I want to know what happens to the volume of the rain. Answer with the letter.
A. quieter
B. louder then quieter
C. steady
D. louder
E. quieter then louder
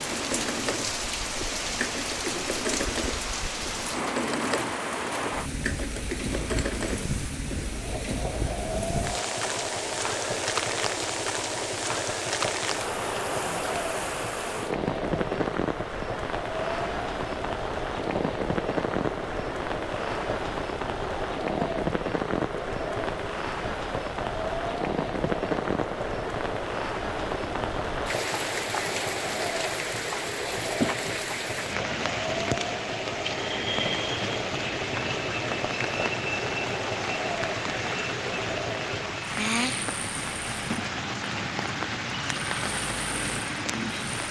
C.